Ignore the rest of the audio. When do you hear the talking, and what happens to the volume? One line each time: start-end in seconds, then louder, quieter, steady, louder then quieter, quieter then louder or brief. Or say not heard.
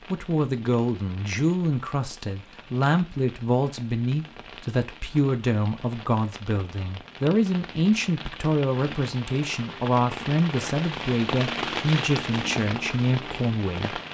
0.1-14.0 steady.